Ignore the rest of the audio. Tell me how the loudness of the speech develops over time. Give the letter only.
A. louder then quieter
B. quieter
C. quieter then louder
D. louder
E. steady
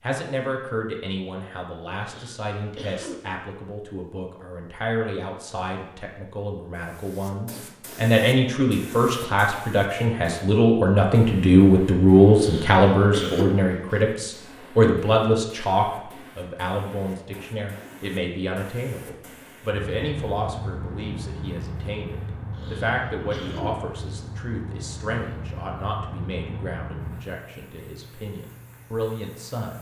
A.